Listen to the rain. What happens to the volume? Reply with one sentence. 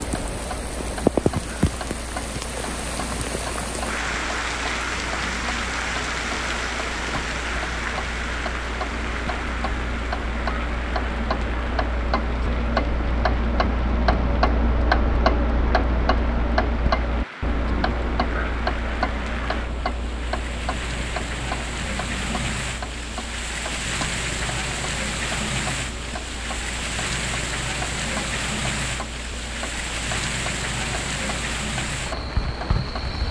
The volume of the rain goes down, then up.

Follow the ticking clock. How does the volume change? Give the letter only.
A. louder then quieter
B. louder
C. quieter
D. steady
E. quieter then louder
A.